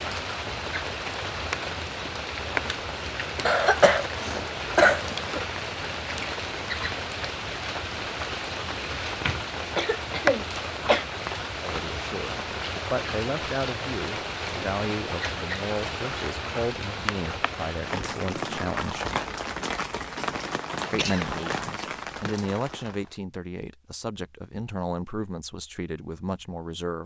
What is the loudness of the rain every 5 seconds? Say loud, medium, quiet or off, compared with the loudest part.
loud, loud, loud, loud, loud, off.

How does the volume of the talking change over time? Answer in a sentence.
The volume of the talking stays about the same.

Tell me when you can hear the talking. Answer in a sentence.
The talking can be heard from 11.6 to 19.1 s and from 20.9 to 27.0 s.